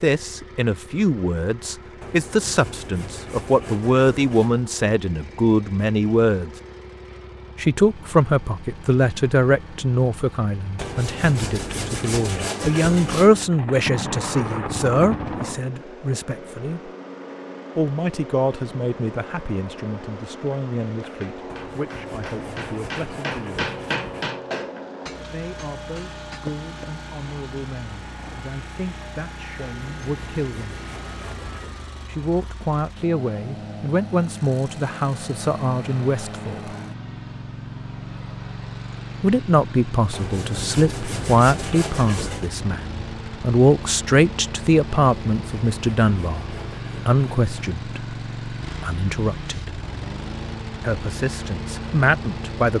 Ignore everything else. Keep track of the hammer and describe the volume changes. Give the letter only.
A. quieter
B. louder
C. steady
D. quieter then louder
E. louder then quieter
E.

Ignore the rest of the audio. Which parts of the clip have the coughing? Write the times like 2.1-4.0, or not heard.
not heard.